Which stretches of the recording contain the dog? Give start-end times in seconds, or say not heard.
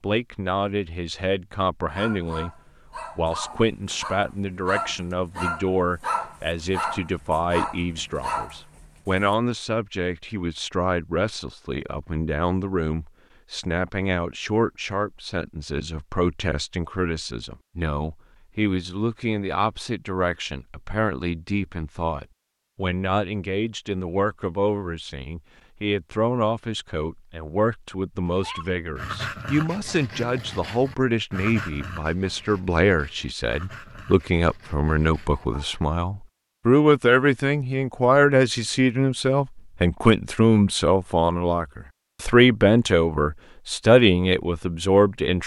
1.9-9.3, 28.2-35.6.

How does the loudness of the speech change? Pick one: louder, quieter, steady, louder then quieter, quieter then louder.
louder.